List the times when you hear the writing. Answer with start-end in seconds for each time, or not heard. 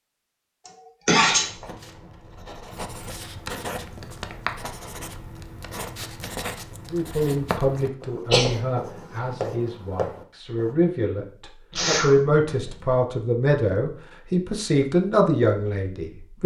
1.3-10.8.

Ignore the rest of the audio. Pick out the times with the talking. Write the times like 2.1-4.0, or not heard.
6.9-16.4.